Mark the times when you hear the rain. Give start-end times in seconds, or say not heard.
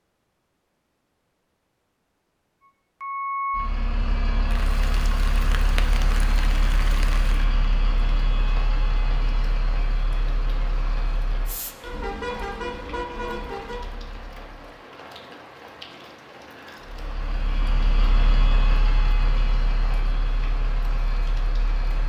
4.5-22.0.